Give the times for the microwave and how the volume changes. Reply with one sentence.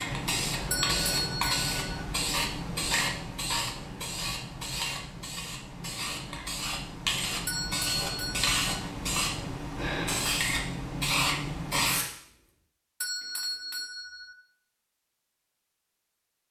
You can't hear the microwave here.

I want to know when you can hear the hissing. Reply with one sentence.
You can hear the hissing from 0.0 to 12.2 s.